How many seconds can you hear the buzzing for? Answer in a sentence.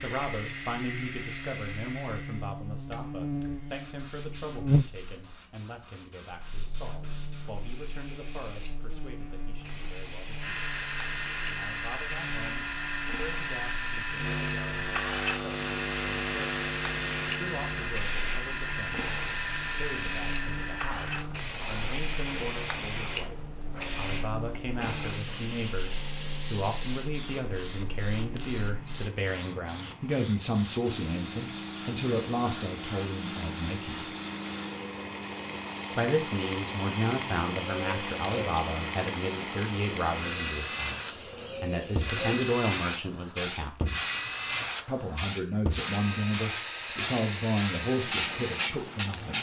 You can hear the buzzing for 29 seconds altogether.